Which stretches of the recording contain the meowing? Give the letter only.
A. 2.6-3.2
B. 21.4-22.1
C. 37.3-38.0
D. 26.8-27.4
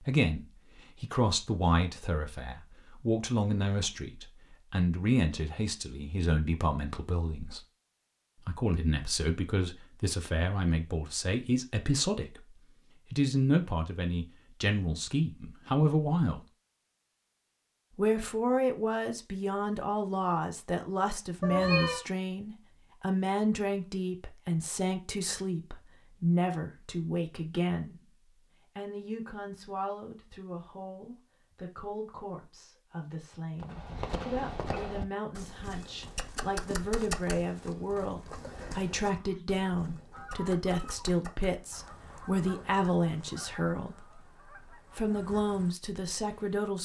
B.